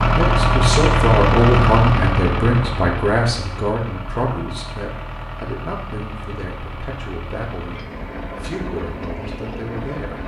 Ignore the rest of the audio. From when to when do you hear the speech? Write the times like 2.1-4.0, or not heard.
0.1-10.2.